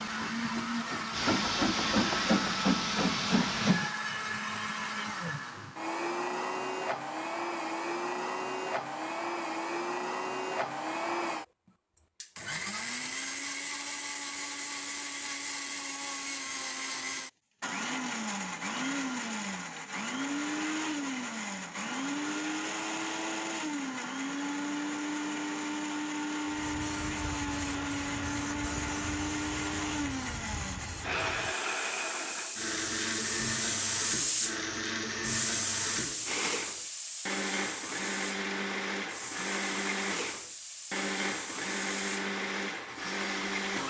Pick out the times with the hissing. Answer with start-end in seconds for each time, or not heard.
0.0-4.0, 26.4-43.8.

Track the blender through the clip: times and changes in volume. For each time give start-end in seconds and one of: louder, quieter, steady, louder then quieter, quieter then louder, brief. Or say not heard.
0.0-43.8 steady.